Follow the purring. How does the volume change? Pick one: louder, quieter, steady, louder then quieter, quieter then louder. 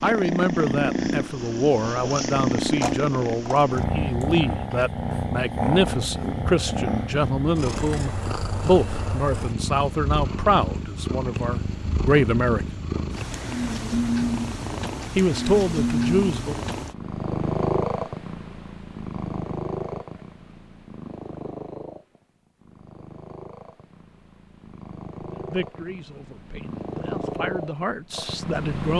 quieter.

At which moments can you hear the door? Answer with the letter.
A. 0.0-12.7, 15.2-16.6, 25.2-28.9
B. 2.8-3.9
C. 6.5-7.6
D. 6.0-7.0
B.